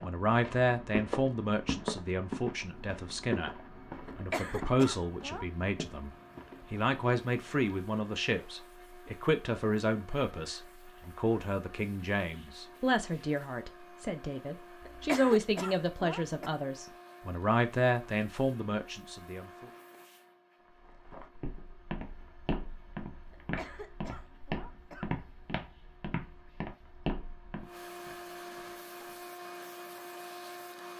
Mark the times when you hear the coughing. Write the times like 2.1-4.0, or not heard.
4.1-5.5, 14.8-16.5, 23.3-25.1.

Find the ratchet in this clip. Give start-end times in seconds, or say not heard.
not heard.